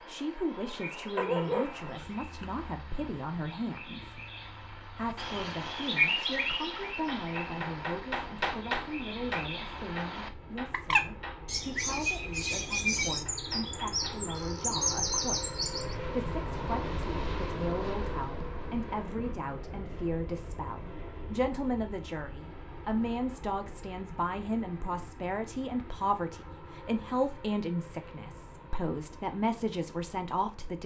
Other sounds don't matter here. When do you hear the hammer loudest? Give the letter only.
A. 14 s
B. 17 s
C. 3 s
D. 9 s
D.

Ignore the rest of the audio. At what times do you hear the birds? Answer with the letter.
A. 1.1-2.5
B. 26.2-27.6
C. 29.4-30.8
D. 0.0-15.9
D.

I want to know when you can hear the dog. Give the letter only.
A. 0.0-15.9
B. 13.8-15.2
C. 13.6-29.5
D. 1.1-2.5
D.